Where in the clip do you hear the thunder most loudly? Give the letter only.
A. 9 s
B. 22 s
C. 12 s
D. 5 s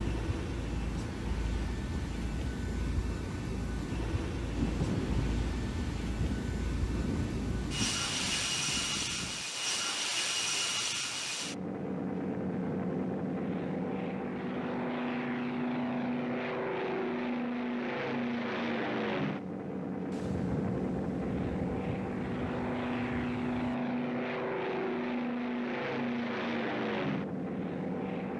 D.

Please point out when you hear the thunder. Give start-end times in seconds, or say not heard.
4.5-9.4, 20.1-23.8.